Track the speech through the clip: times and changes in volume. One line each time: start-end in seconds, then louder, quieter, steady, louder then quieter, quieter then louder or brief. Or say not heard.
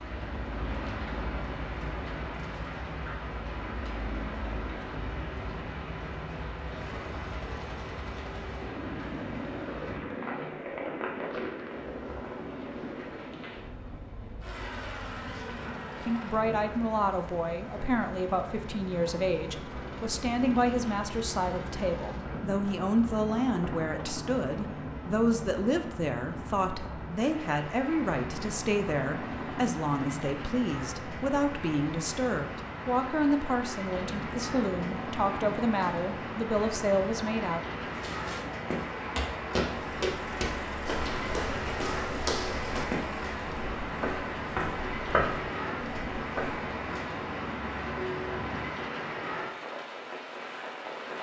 16.1-37.6 steady.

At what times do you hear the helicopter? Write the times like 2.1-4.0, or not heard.
0.0-48.9.